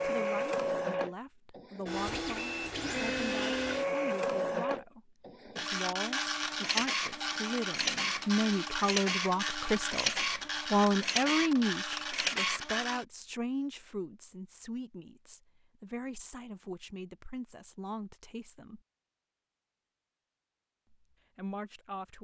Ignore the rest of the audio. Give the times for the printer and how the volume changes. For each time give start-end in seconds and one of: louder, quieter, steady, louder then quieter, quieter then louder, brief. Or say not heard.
0.0-13.1 steady.